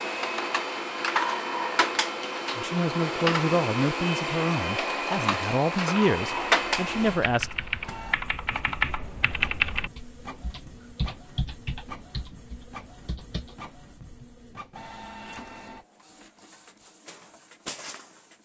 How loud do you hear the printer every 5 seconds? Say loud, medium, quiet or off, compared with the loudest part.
loud, loud, quiet, quiet.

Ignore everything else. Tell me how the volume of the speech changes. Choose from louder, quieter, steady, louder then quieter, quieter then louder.
quieter then louder.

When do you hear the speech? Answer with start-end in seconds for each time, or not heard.
2.5-7.5.